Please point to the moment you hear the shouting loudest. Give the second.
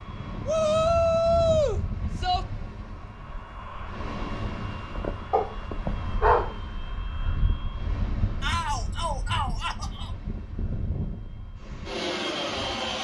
1 s.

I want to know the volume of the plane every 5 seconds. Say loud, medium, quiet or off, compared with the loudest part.
medium, medium, loud.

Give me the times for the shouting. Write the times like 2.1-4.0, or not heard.
0.5-2.5, 8.4-10.1.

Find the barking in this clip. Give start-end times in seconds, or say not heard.
5.3-6.5.